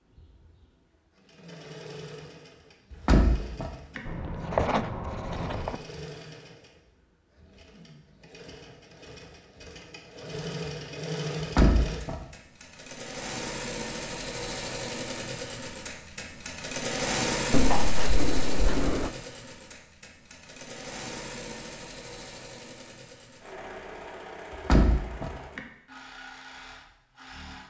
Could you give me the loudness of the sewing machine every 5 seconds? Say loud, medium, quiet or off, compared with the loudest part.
quiet, quiet, loud, loud, medium, quiet.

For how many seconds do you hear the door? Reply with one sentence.
The door can be heard for 3 seconds in total.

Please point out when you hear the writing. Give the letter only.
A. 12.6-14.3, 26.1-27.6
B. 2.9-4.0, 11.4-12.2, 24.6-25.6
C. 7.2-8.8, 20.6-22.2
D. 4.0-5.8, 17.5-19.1
D.